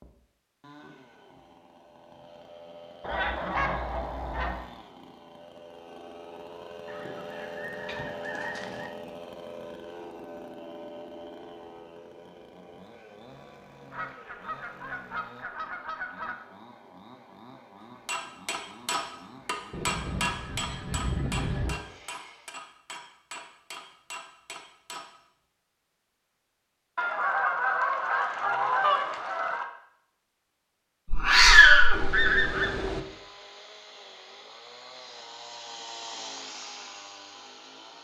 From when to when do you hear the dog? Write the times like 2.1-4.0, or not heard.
not heard.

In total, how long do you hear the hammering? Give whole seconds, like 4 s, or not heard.
7 s.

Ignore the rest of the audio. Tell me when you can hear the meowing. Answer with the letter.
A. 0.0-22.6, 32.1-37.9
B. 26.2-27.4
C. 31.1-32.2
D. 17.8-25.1
C.